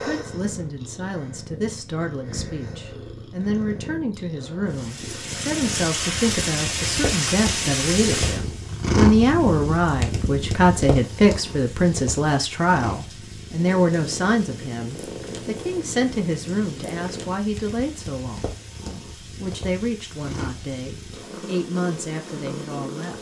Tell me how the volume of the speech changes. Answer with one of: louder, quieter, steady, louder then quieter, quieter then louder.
louder then quieter.